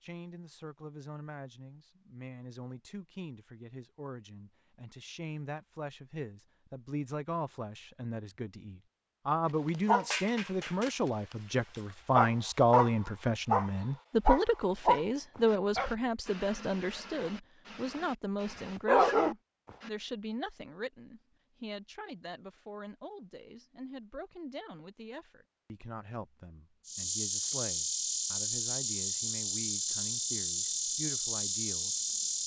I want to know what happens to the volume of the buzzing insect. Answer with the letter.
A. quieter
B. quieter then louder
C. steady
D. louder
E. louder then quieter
C.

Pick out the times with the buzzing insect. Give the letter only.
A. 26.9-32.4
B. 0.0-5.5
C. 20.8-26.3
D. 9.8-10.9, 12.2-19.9
A.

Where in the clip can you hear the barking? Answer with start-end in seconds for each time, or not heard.
9.8-10.9, 12.2-19.9.